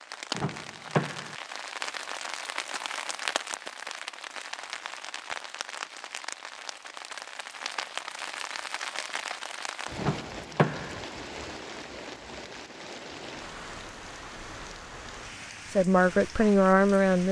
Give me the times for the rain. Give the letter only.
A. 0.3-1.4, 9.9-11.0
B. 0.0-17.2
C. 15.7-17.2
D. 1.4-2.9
B.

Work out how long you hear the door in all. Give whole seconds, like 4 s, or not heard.
2 s.